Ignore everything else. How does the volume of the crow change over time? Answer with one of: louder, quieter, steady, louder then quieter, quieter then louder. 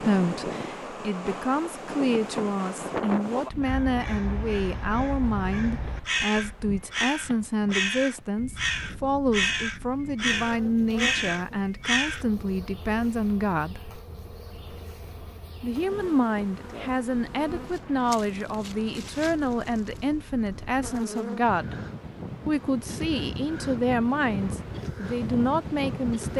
louder.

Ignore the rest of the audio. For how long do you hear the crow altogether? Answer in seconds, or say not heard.
9 s.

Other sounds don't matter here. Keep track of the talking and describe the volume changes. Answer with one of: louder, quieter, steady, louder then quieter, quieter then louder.
steady.